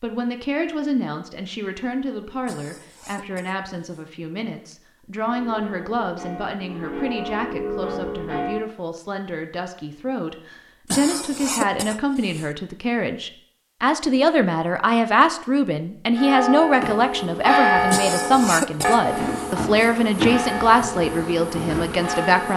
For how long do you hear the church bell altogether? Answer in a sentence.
You can hear the church bell for 10 seconds altogether.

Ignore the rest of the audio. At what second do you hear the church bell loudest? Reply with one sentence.
The volume of the church bell peaks at 18 seconds.